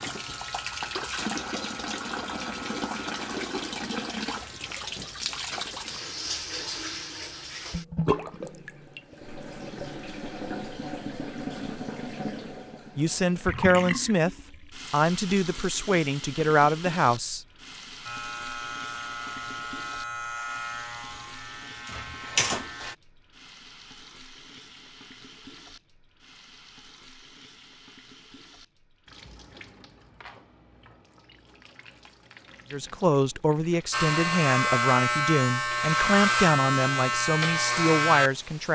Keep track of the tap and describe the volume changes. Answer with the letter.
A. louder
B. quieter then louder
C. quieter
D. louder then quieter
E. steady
C.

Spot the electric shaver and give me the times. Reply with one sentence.
You can hear the electric shaver from 0.0 to 4.8 s, from 18.0 to 22.9 s and from 33.9 to 38.7 s.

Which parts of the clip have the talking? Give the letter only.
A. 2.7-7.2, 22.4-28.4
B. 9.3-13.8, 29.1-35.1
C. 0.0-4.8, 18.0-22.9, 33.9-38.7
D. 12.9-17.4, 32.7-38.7
D.